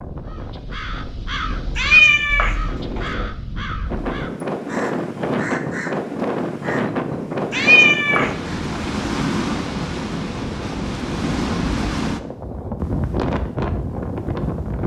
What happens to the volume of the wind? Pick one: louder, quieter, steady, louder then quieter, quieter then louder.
louder.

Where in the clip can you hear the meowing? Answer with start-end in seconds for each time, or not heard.
1.8-3.0, 7.5-8.8.